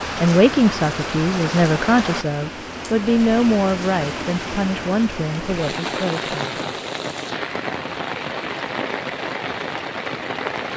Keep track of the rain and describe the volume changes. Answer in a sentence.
The loudness of the rain stays about the same.